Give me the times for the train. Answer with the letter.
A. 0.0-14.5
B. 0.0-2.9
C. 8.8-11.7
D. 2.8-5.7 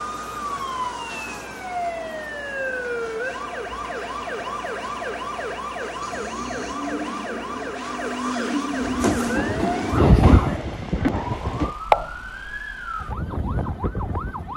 C.